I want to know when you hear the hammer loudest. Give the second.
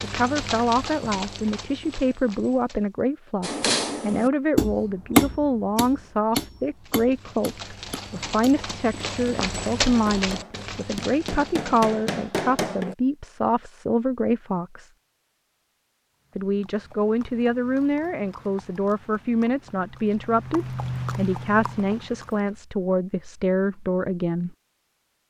5 s.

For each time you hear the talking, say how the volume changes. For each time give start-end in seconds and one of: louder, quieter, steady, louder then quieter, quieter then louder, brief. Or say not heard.
0.0-14.9 steady
16.4-24.6 steady.